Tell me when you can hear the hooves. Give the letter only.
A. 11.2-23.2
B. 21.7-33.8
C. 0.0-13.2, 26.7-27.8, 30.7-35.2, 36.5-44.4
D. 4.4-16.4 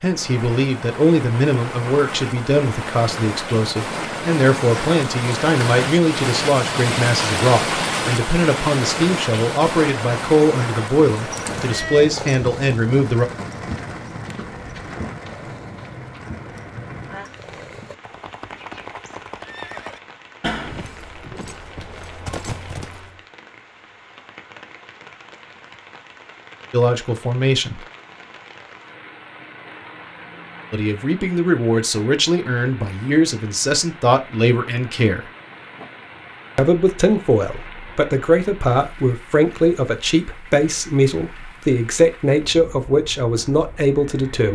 A.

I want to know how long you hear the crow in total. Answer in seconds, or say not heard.
not heard.